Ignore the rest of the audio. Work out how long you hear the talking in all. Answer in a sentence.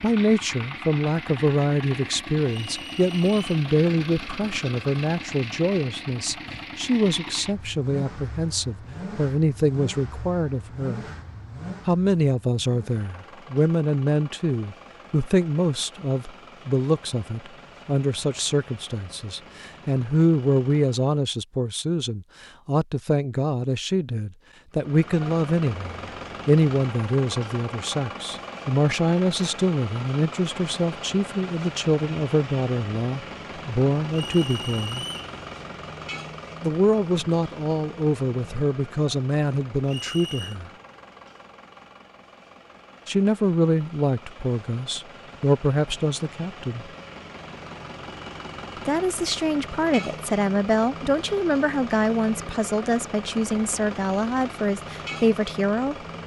You can hear the talking for 49 seconds altogether.